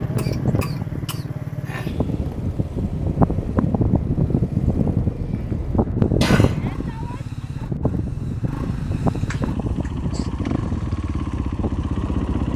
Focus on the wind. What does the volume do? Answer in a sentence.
The volume of the wind goes up, then down.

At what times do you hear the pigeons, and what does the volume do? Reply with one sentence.
The pigeons can't be heard in this clip.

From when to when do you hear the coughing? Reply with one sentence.
The coughing can be heard from 0.1 to 1.9 s, from 6.2 to 6.7 s and from 9.2 to 10.3 s.